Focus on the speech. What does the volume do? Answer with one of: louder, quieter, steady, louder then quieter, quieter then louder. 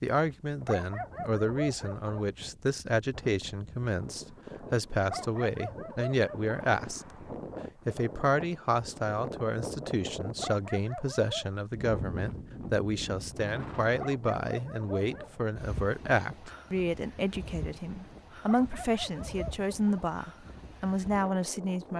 steady.